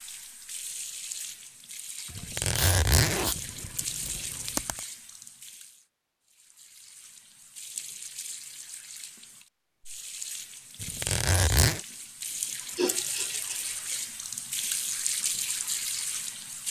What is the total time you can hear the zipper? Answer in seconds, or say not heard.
4 s.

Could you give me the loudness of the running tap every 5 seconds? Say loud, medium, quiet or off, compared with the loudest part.
medium, quiet, loud, loud.